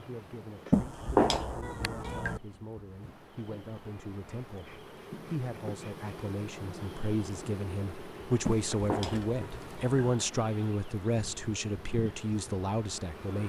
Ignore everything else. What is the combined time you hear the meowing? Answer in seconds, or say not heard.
3 s.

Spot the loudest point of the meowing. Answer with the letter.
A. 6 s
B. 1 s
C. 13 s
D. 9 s
B.